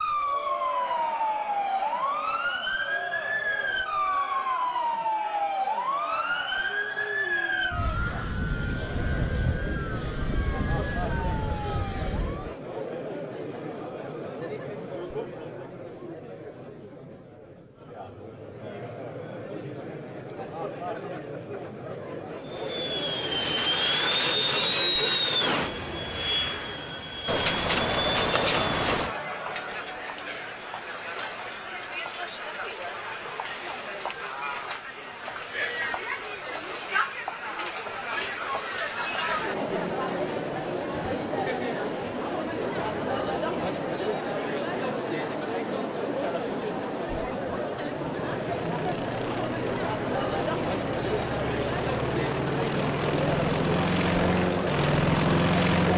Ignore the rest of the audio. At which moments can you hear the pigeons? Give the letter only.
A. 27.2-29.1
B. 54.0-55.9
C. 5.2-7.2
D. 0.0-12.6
A.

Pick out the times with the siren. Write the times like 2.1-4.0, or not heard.
0.0-12.6.